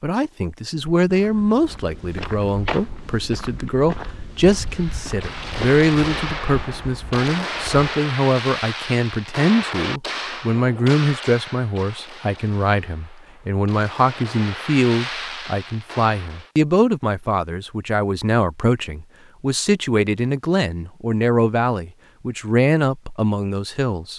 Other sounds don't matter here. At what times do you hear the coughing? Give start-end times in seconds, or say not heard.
not heard.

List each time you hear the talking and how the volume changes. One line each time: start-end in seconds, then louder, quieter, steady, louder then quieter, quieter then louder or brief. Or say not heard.
0.0-24.1 steady.